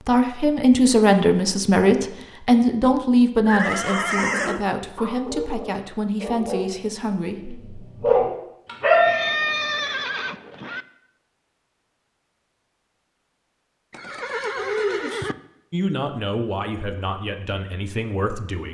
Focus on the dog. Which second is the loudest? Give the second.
9 s.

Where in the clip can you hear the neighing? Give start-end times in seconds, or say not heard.
3.5-4.7, 8.9-10.8, 13.9-15.3.